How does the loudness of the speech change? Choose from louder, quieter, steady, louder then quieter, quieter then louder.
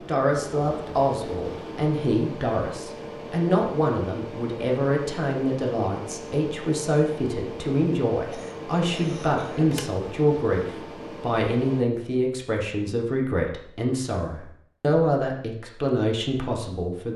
steady.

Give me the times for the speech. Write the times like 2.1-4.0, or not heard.
0.1-17.1.